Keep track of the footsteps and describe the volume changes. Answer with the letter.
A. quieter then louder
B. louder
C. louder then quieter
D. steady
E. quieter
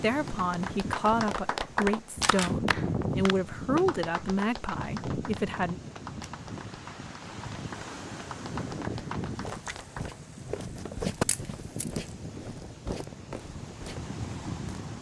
C.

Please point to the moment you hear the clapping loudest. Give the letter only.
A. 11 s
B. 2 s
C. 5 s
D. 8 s
B.